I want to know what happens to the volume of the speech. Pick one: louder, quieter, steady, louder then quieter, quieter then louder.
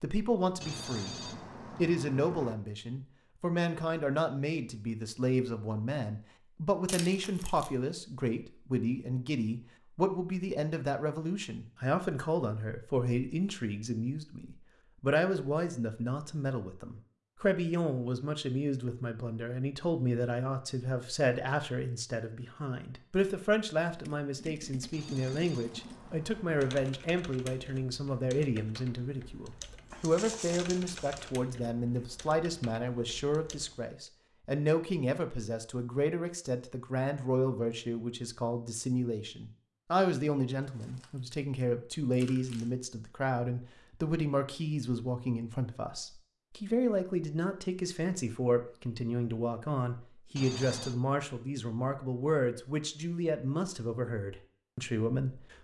steady.